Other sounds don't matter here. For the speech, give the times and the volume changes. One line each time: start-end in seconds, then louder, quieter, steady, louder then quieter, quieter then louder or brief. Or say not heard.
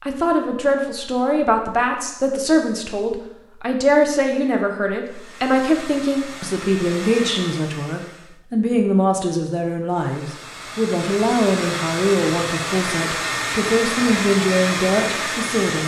0.0-15.8 steady.